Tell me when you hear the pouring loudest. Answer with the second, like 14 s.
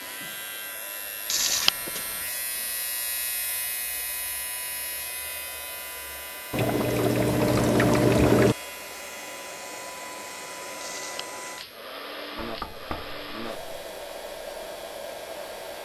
8 s.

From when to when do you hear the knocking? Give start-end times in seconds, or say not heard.
12.3-13.9.